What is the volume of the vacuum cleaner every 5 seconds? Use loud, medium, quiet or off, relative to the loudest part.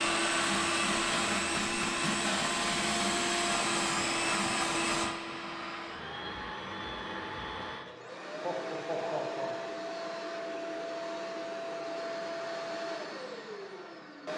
loud, medium, medium.